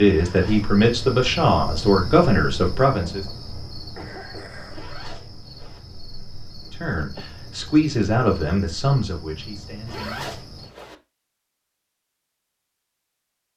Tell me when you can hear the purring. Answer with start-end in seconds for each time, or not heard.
not heard.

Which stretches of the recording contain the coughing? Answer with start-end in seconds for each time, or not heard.
4.0-4.9, 6.8-7.3.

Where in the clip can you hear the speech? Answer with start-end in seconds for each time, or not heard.
0.0-3.2, 6.6-10.4.